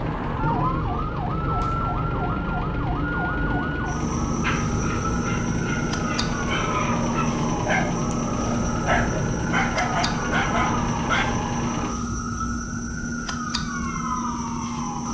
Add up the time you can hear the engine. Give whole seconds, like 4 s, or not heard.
12 s.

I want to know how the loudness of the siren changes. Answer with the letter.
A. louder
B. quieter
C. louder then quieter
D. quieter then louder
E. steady
E.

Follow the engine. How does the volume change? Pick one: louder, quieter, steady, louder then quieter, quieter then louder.
steady.